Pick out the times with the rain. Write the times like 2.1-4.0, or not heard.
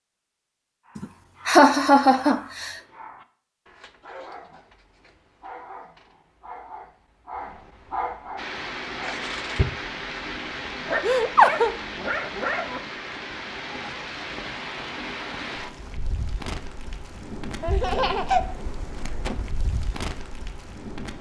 8.3-21.1.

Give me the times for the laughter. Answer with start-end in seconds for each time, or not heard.
0.9-2.8, 11.0-11.7, 17.6-18.4.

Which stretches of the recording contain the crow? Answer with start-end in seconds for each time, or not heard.
not heard.